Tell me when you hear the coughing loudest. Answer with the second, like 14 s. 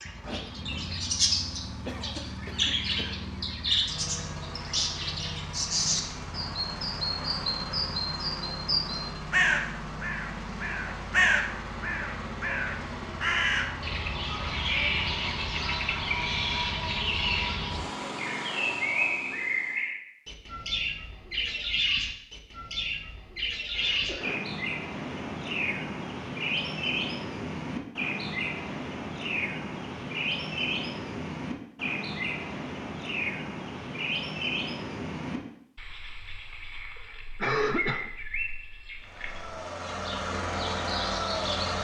38 s.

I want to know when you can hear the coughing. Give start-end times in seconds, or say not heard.
1.9-3.2, 23.7-24.4, 37.4-38.1.